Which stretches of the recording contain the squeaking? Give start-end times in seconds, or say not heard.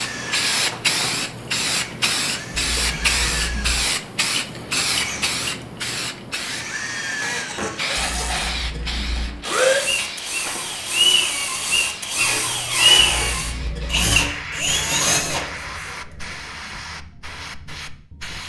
12.2-13.6.